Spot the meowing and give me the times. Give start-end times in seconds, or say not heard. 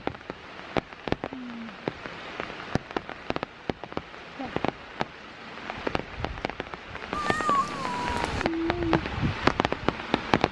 7.1-8.4.